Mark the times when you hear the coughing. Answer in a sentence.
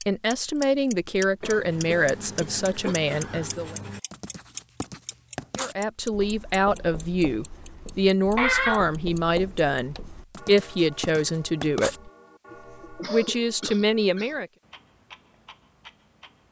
You can hear the coughing from 1.4 to 3.0 s, from 8.3 to 8.8 s and from 13.0 to 14.3 s.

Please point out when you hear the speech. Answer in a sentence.
You can hear the speech from 0.1 to 3.8 s, from 5.5 to 12.1 s and from 12.9 to 14.5 s.